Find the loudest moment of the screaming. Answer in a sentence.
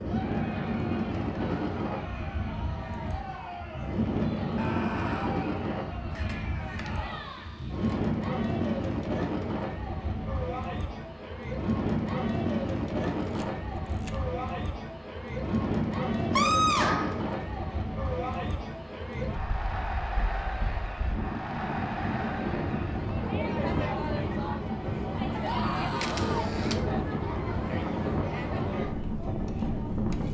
The volume of the screaming peaks at 17 seconds.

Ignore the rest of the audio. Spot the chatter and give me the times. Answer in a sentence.
You can hear the chatter from 0.0 to 30.2 s.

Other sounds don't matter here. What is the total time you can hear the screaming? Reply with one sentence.
The screaming can be heard for 3 seconds in total.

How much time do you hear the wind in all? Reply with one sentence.
You can hear the wind for 30 seconds altogether.